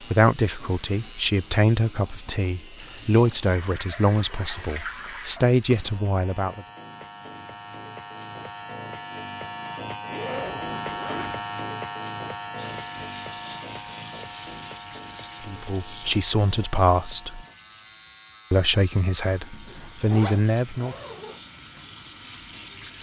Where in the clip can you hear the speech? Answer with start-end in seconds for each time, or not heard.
0.0-6.7, 15.4-17.4, 18.5-20.9.